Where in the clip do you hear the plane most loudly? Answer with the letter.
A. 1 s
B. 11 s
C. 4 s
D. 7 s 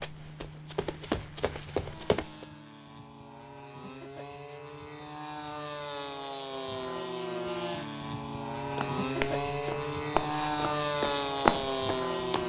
B.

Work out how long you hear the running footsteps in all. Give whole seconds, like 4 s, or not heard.
6 s.